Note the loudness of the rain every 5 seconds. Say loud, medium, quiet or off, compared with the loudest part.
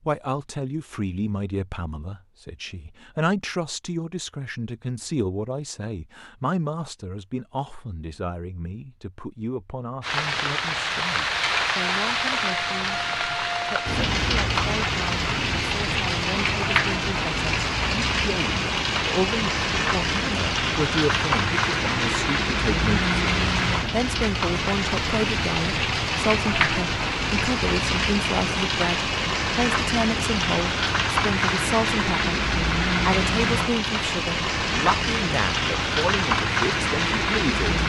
off, off, loud, loud, loud, loud, loud, loud.